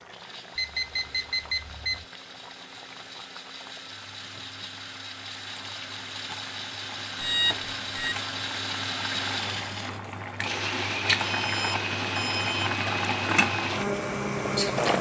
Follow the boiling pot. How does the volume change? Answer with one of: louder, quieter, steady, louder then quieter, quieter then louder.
louder.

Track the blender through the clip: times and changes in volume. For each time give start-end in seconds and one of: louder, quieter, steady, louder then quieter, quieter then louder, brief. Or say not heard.
0.1-14.9 louder.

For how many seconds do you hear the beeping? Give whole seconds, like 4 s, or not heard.
4 s.